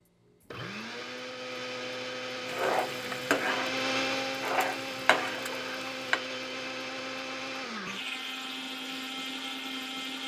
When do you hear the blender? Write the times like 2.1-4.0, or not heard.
0.0-10.2.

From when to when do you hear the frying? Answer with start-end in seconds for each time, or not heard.
2.5-6.2.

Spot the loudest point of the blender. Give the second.
4 s.